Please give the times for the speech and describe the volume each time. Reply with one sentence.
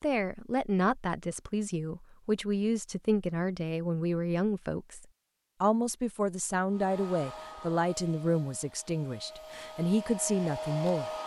The speech can be heard from 0.0 to 11.1 s, at a steady volume.